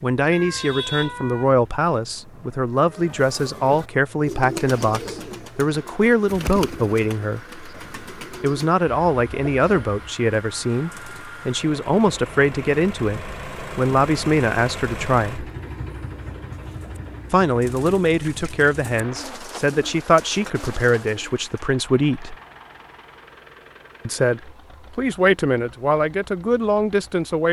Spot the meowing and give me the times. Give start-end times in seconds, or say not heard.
0.3-1.4.